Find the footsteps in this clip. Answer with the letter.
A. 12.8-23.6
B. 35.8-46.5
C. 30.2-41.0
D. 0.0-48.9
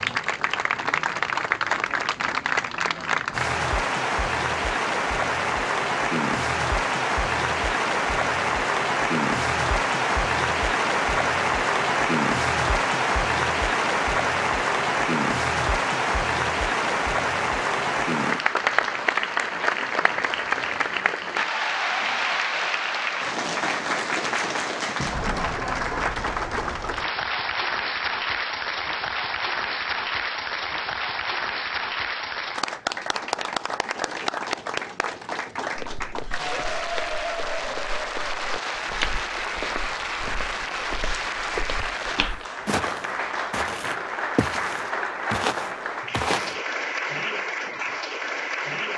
B.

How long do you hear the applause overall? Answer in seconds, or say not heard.
49 s.